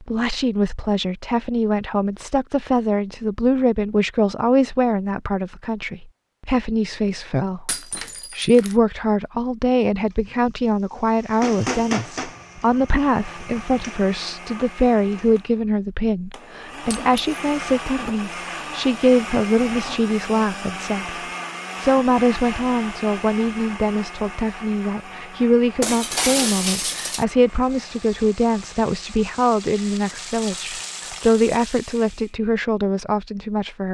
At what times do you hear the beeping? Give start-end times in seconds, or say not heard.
not heard.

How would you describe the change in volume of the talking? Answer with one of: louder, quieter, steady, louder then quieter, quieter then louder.
steady.